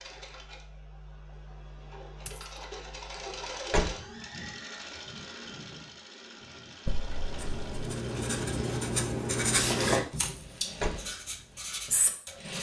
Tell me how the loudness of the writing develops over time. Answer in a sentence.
The loudness of the writing goes up, then down.